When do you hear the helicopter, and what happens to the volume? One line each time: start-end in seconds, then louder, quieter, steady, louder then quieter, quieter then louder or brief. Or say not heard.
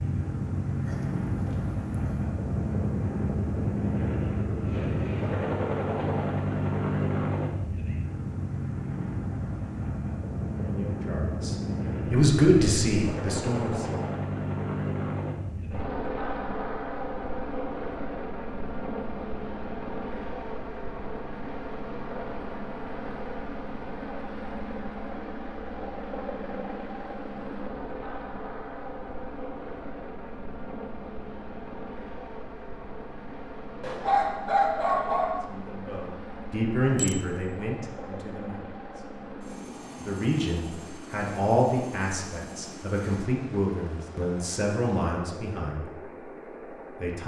0.0-47.2 quieter.